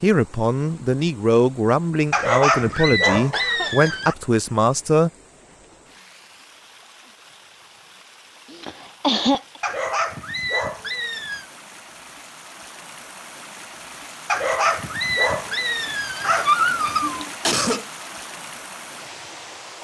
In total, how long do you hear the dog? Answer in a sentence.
You can hear the dog for 7 seconds altogether.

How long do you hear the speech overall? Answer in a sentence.
The speech can be heard for 5 seconds in total.